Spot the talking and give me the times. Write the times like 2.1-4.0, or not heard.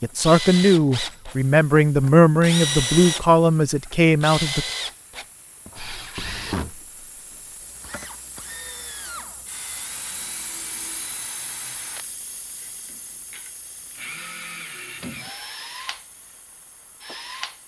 0.0-4.7.